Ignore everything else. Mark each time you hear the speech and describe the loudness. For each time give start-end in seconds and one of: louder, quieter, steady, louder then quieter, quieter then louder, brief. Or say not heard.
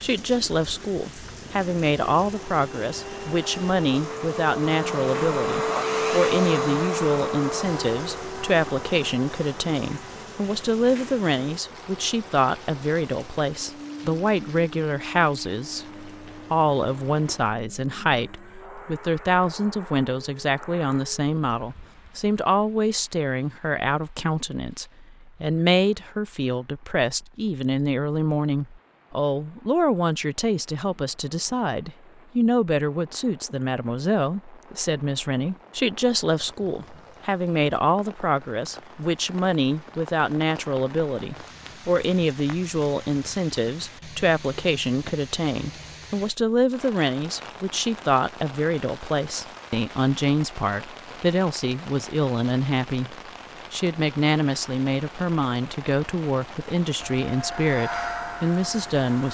0.0-59.2 steady.